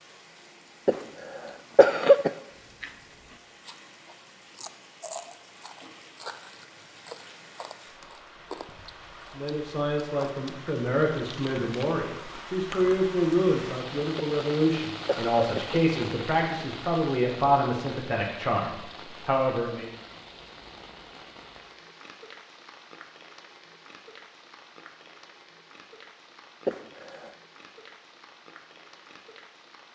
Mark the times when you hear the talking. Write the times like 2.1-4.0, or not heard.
9.3-19.9.